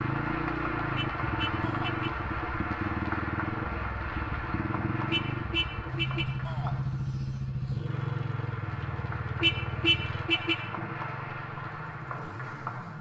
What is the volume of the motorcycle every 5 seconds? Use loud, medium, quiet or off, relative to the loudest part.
loud, loud, medium.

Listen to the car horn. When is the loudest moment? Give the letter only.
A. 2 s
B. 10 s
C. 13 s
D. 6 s
B.